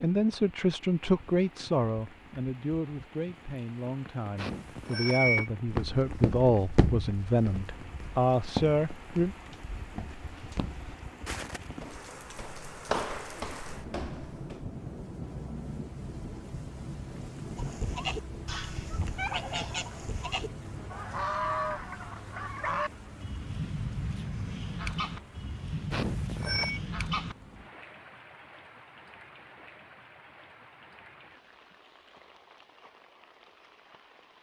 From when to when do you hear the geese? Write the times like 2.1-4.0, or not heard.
17.6-27.4.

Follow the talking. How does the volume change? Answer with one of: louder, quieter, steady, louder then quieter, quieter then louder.
quieter then louder.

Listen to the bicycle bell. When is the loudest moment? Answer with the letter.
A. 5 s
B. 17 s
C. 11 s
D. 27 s
A.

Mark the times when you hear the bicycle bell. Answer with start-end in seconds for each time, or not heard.
4.3-5.5, 25.9-26.8.